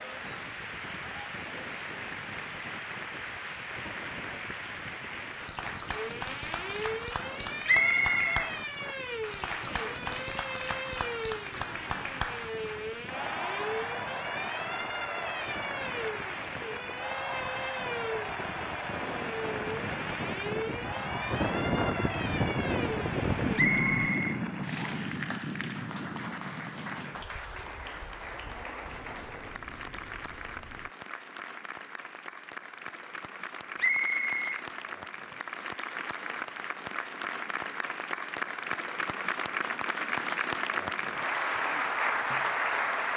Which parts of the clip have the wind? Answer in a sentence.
The wind can be heard from 0.0 to 30.9 s.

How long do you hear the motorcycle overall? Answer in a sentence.
The motorcycle can't be heard in this clip.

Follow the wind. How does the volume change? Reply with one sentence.
The loudness of the wind goes up, then down.